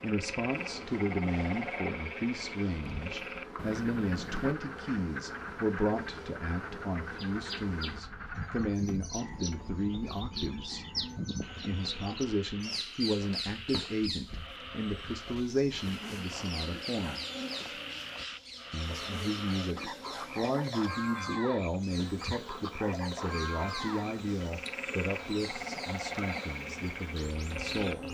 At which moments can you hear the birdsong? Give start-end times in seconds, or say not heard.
7.0-28.0.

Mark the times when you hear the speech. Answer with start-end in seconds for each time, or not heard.
0.0-10.8, 11.7-17.2, 18.7-28.0.